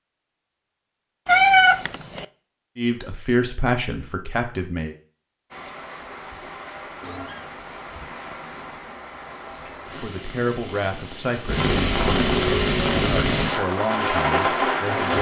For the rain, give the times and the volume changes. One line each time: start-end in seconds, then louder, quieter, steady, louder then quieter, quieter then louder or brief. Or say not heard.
5.5-15.1 louder.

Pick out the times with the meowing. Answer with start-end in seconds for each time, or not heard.
1.2-2.2, 7.0-8.3, 11.4-13.5.